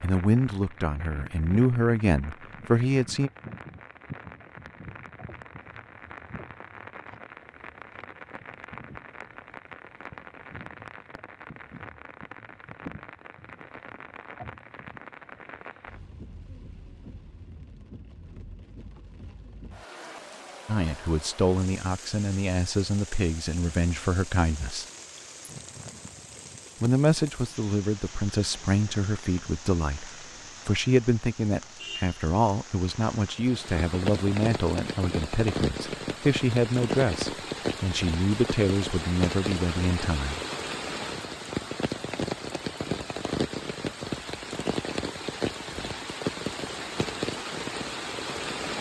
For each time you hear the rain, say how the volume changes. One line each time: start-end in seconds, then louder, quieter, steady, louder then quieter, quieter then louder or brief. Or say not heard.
0.0-48.7 louder.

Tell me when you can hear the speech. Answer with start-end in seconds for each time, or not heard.
0.0-3.3, 20.6-24.9, 26.8-40.4.